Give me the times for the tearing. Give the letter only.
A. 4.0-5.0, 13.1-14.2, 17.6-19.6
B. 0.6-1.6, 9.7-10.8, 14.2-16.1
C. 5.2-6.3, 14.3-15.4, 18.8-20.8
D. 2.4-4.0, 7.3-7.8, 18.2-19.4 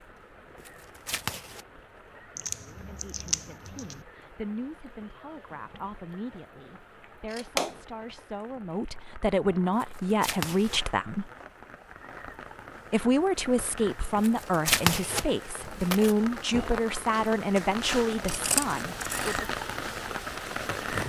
B.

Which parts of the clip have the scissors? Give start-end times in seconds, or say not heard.
2.4-4.0, 7.3-7.8, 18.2-19.4.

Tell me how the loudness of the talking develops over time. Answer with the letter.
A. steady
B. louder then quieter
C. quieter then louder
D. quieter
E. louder
E.